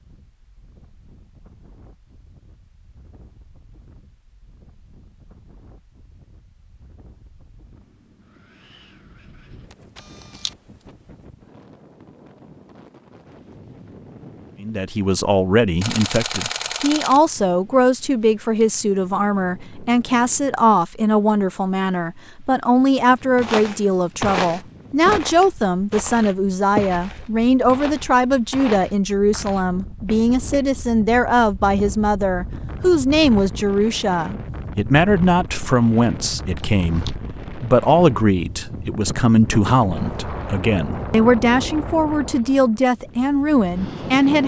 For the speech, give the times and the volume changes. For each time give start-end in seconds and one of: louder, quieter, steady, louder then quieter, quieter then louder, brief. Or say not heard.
14.6-44.4 steady.